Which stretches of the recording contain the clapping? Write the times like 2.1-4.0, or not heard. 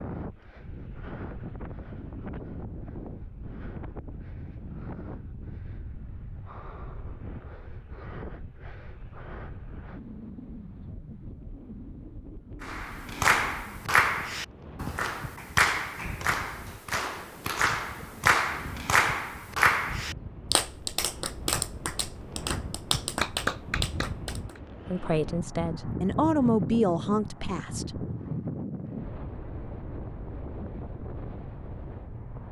12.6-24.6.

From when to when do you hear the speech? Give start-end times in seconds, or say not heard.
24.9-28.1.